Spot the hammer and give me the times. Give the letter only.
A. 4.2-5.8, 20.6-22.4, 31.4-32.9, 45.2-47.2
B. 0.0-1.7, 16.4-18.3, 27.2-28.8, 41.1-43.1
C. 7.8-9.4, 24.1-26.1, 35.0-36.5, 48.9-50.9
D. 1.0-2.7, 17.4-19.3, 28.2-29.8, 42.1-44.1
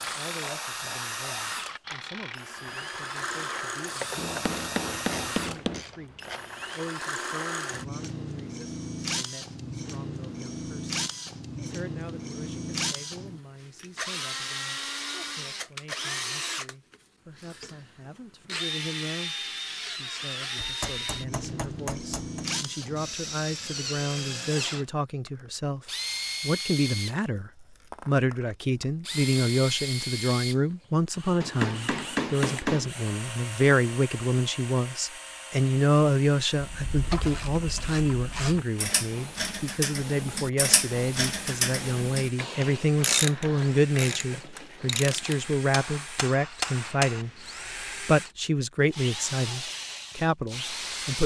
A.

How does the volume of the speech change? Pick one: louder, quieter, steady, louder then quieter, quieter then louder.
louder.